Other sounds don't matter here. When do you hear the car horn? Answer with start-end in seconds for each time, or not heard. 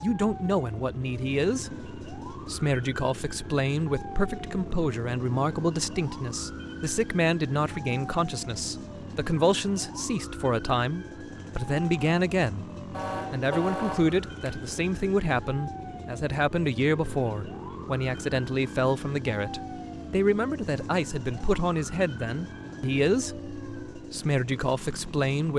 12.9-14.8.